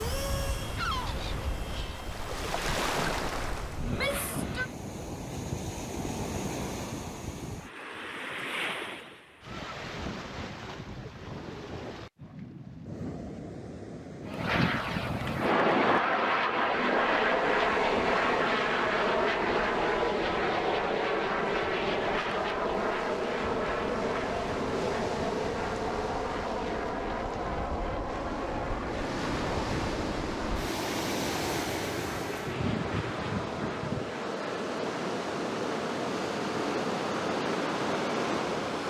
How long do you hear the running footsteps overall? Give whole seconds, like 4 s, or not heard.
not heard.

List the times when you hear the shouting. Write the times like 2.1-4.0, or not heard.
3.8-4.7.